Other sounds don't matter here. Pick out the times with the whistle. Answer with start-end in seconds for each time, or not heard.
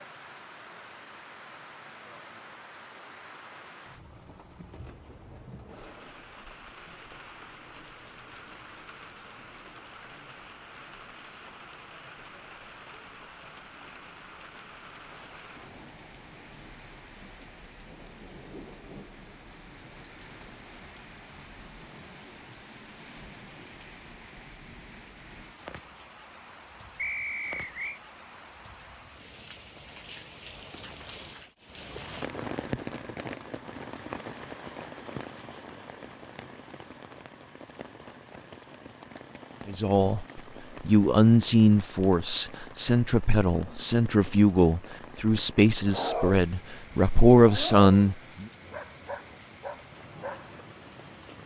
26.9-28.0.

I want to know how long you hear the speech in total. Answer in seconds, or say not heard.
9 s.